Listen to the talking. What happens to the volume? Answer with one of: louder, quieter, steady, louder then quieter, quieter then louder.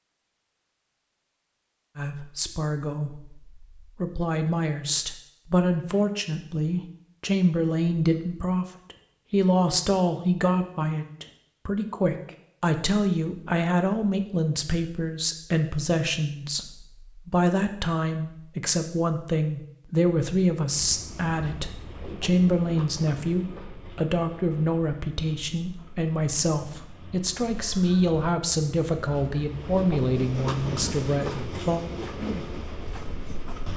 steady.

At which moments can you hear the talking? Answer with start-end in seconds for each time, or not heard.
1.9-31.9.